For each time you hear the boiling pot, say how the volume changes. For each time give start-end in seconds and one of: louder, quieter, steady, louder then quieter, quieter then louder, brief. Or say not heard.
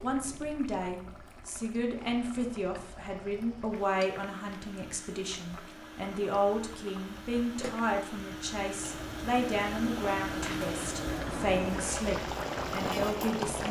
0.0-13.6 louder.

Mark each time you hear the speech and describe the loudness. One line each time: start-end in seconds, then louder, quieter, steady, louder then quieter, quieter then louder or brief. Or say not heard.
0.0-13.6 steady.